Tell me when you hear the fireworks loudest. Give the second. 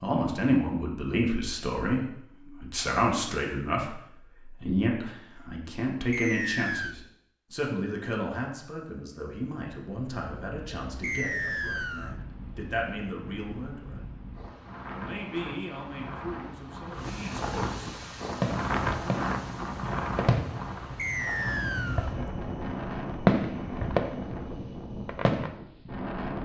23 s.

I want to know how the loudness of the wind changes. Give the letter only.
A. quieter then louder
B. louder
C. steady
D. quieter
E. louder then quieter
E.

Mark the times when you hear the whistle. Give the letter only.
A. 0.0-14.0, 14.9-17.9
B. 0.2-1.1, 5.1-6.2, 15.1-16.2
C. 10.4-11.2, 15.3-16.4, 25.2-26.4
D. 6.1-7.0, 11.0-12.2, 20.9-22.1
D.